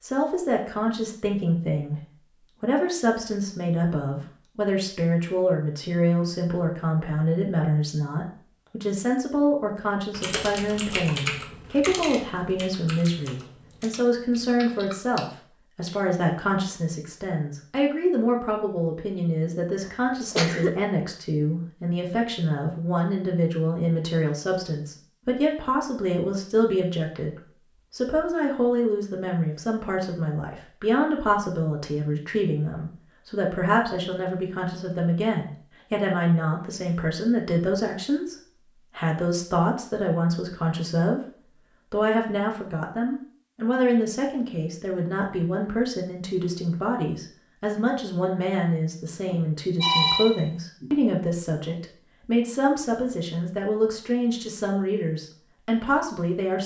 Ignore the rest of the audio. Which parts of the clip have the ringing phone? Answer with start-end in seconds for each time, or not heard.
49.3-50.9.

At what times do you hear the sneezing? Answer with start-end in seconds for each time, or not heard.
19.9-20.9.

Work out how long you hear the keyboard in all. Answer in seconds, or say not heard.
5 s.